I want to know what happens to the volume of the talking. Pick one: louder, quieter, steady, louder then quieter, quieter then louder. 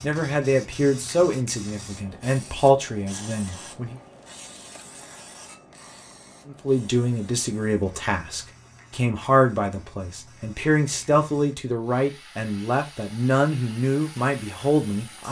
steady.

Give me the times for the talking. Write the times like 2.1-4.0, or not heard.
0.0-4.0, 6.5-15.2.